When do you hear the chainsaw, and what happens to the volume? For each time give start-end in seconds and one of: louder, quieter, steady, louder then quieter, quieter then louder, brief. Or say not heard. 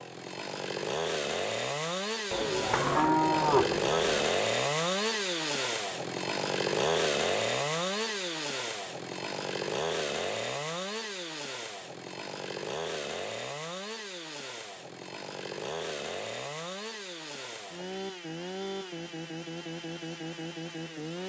0.0-21.2 quieter.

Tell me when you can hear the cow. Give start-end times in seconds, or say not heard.
2.3-4.3.